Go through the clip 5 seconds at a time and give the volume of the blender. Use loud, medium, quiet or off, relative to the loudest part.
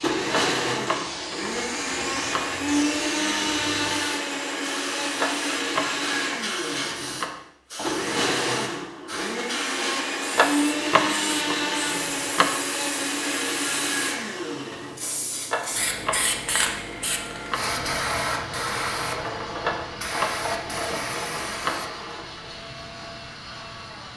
loud, loud, loud, quiet, quiet.